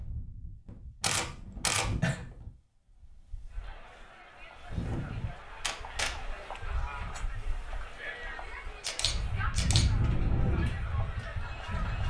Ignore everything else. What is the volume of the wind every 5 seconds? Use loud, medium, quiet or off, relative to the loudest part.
medium, medium, loud.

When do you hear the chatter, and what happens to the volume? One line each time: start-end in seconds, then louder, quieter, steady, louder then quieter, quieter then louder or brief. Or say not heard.
3.5-12.0 louder.